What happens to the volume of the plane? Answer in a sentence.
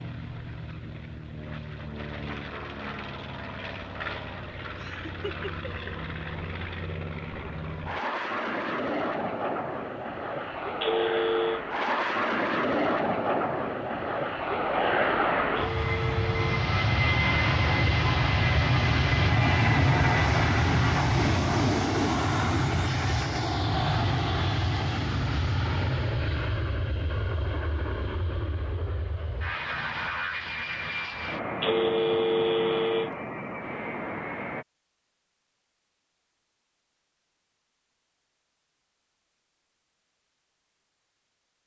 The volume of the plane goes up, then down.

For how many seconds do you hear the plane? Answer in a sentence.
You can hear the plane for 35 seconds altogether.